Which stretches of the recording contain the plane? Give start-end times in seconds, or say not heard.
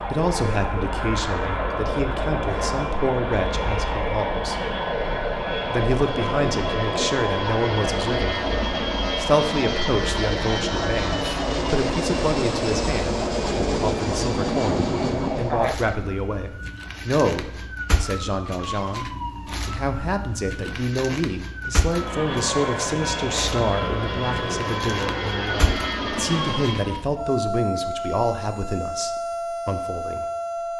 0.0-15.7, 21.8-27.1.